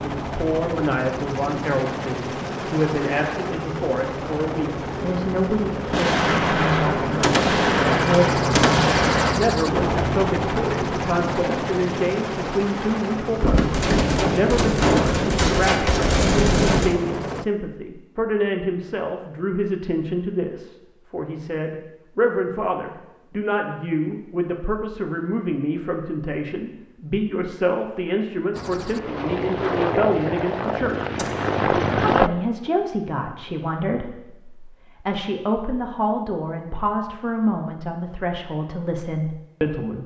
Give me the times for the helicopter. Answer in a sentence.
You can hear the helicopter from 0.0 to 17.4 s and from 28.5 to 32.3 s.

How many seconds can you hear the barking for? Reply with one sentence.
You can't hear the barking here.